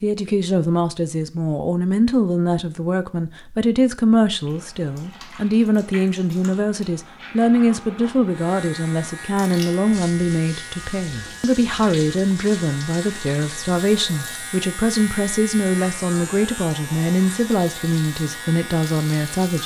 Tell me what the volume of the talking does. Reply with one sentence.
The loudness of the talking stays about the same.